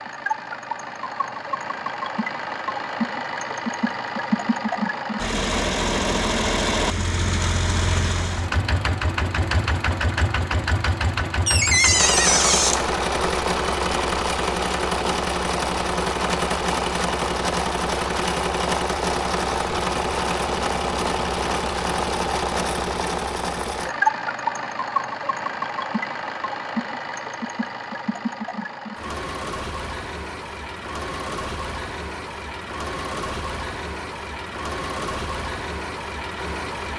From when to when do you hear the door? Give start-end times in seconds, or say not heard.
11.4-12.8.